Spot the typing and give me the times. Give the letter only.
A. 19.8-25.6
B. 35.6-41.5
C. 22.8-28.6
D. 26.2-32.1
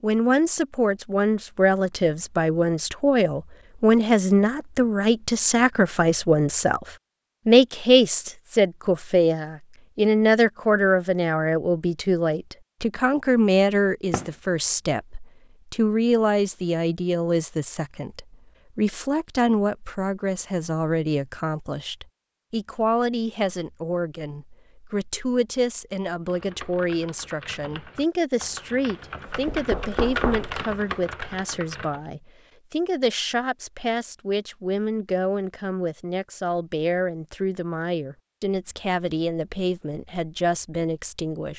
D.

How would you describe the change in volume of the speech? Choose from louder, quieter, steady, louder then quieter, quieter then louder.
quieter.